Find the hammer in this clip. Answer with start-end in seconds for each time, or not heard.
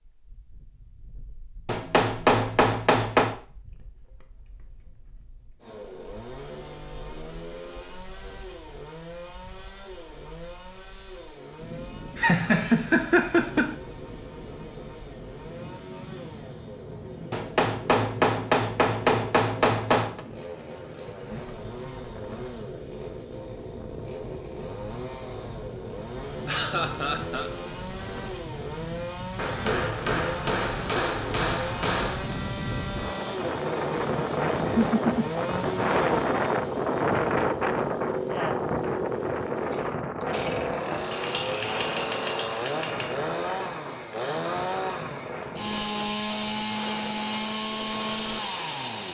1.6-3.4, 17.3-20.2, 29.4-32.4, 41.1-43.1.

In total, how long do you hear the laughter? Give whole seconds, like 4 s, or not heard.
3 s.